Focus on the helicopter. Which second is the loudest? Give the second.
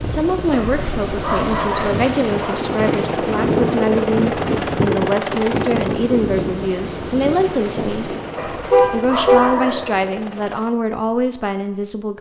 4 s.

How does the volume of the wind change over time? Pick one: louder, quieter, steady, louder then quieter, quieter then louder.
louder then quieter.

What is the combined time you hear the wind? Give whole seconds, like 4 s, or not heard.
9 s.